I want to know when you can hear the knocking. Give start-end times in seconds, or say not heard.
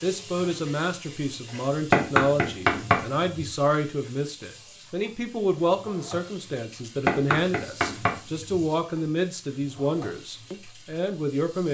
1.9-3.5, 7.0-8.6.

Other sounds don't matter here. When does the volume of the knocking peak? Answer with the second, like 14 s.
2 s.